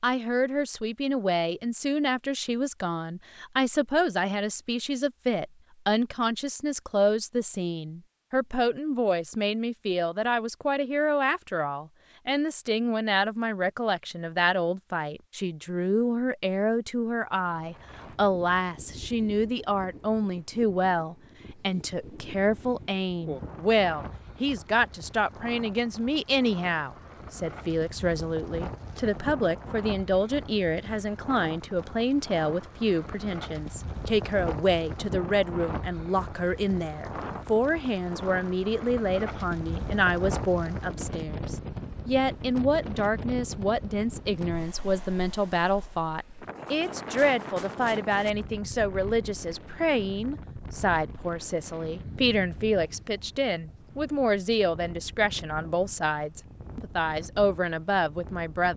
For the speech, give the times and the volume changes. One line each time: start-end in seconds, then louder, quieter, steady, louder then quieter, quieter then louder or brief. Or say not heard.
0.0-58.7 steady.